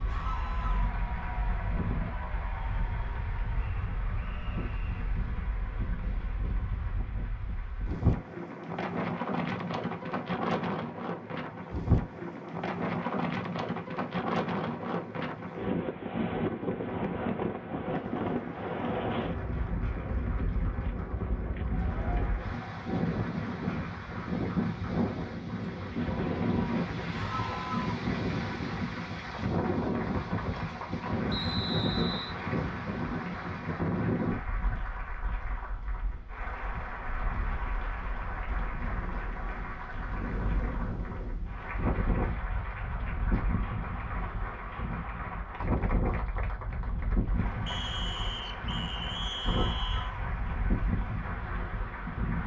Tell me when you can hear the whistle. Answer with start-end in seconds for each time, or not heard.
3.5-5.0, 31.2-32.4, 47.6-50.1.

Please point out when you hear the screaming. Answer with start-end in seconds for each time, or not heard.
0.1-0.9, 27.1-28.0, 49.4-50.2.